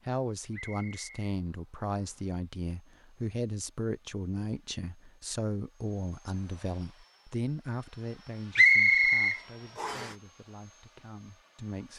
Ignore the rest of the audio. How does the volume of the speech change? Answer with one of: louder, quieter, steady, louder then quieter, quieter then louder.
quieter.